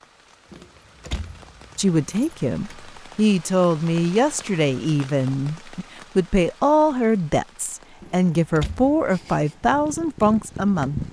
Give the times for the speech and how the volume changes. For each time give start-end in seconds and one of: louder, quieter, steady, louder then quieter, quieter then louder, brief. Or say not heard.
1.8-11.0 steady.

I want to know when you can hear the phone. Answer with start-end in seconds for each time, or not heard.
not heard.